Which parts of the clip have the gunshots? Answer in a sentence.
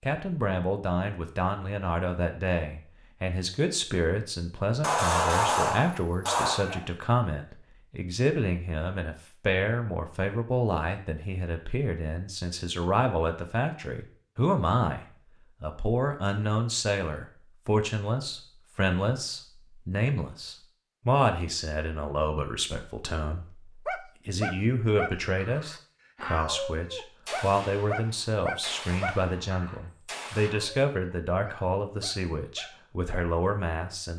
The gunshots can be heard from 4.8 to 6.8 s and from 27.2 to 30.5 s.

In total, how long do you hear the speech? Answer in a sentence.
The speech can be heard for 34 seconds in total.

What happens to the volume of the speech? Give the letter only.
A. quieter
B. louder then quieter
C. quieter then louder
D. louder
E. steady
E.